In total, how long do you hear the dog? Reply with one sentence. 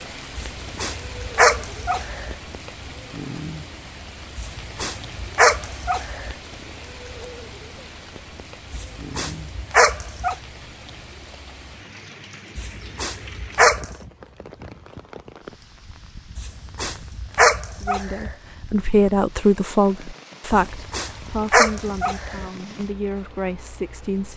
You can hear the dog for 11 seconds altogether.